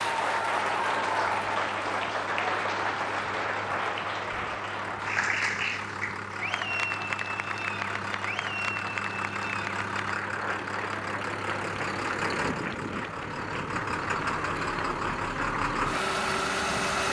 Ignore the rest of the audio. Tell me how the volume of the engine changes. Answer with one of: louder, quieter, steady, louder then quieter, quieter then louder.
louder.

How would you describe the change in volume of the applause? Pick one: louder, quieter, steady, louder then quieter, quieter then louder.
quieter.